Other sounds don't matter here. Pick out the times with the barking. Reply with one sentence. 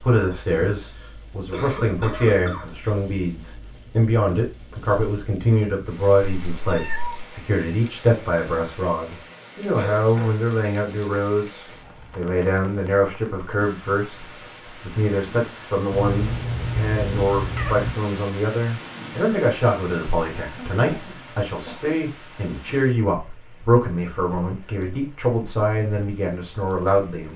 You can't hear the barking here.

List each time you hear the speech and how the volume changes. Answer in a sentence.
The speech can be heard from 0.0 to 27.3 s, at a steady volume.